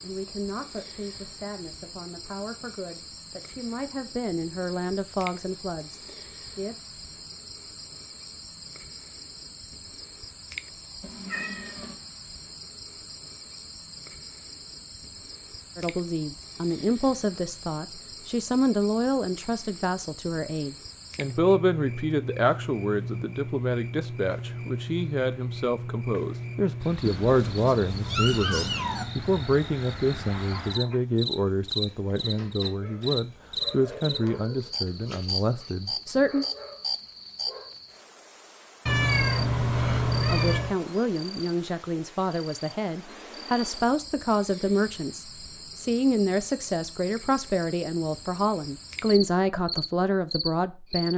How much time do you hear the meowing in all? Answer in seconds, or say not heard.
5 s.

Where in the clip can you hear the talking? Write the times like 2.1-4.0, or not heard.
0.0-7.0, 15.8-36.5, 40.3-51.1.